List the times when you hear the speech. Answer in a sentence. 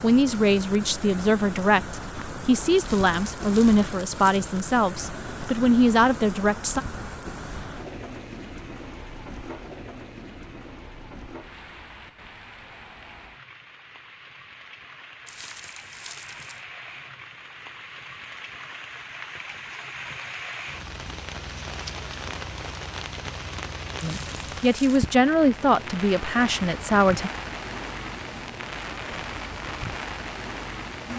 You can hear the speech from 0.0 to 6.8 s and from 24.0 to 27.3 s.